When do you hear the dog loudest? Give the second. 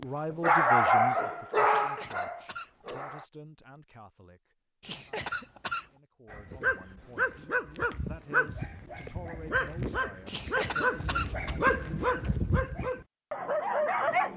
1 s.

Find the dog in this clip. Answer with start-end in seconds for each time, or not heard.
0.0-3.2, 6.3-14.3.